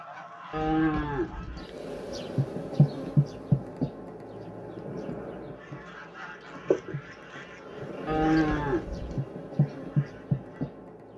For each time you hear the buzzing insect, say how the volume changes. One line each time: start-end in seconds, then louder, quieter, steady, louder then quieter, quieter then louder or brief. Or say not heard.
1.6-11.1 quieter then louder.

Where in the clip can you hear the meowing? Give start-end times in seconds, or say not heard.
not heard.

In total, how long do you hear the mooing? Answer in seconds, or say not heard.
2 s.